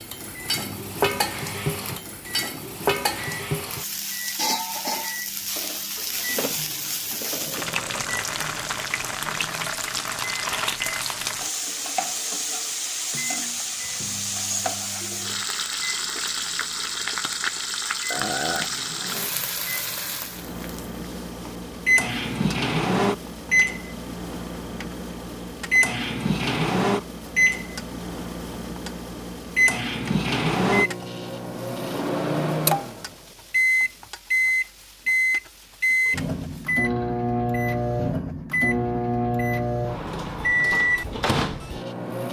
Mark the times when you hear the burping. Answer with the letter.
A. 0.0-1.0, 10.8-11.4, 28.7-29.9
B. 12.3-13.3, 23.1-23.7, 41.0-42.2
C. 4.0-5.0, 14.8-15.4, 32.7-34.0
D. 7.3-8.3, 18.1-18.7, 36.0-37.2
D.